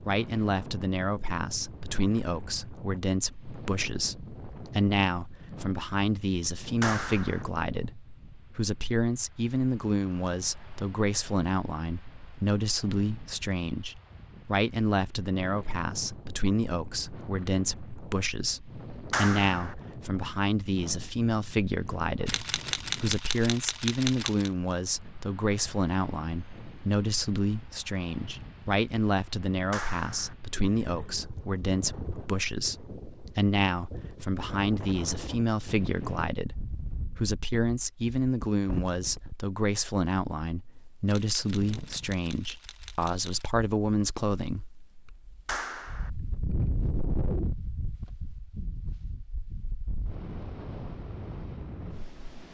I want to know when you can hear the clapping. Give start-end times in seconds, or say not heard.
6.8-7.5, 19.1-19.8, 29.7-30.4, 45.5-46.1.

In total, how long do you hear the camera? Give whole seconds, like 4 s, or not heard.
5 s.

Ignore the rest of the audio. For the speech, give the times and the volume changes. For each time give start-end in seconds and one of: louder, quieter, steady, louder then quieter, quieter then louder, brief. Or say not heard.
0.0-44.9 steady.